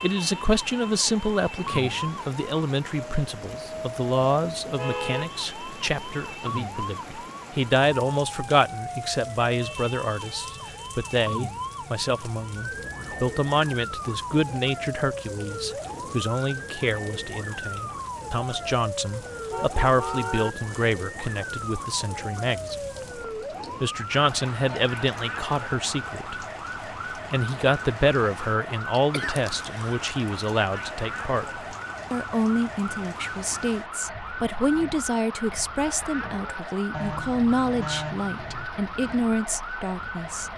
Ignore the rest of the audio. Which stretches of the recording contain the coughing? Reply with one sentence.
You can hear the coughing from 29.1 to 30.1 s.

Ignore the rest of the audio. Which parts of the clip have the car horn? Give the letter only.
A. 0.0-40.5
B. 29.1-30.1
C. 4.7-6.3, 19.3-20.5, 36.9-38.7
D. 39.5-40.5
C.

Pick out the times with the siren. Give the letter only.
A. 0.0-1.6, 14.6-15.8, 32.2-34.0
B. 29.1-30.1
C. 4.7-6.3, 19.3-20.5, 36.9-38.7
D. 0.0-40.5
D.